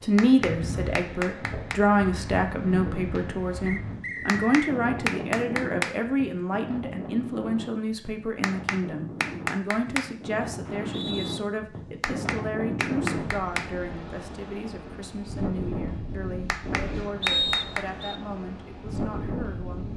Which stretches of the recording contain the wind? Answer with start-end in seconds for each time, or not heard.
0.0-19.9.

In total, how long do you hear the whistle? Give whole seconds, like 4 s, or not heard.
3 s.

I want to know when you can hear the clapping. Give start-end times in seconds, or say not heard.
0.1-1.8, 4.2-6.0, 8.4-10.1, 12.0-13.7, 16.4-17.9.